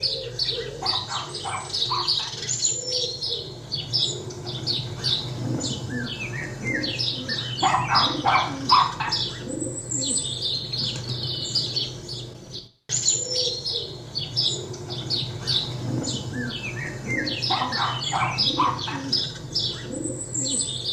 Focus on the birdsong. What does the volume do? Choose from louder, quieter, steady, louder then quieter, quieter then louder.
steady.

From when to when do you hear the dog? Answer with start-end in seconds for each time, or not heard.
0.8-2.3, 7.6-9.1, 17.4-19.0.